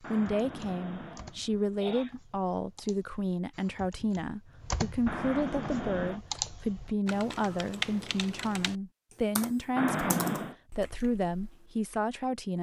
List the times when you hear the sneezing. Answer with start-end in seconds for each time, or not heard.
0.0-2.1, 5.0-6.2, 9.8-10.6.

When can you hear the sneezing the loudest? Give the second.
10 s.